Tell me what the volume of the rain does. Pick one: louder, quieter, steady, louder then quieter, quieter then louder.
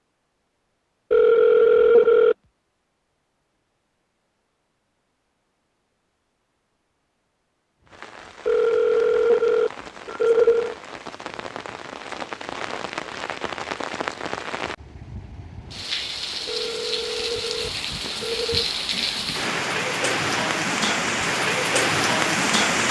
louder.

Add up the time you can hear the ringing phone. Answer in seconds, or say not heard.
6 s.